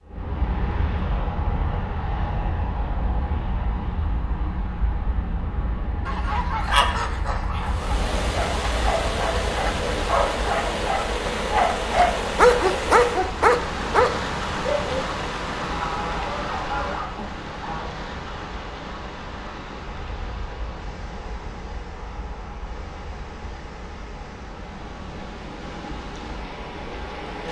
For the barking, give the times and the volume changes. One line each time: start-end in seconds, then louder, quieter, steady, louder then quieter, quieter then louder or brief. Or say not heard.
8.3-15.0 louder.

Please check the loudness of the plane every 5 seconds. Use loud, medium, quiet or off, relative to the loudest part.
loud, loud, medium, medium, medium, medium.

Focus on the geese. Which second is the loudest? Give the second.
7 s.